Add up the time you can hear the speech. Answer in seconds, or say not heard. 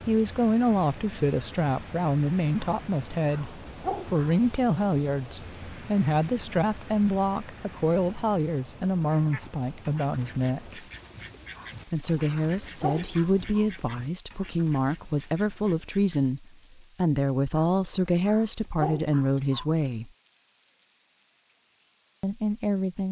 20 s.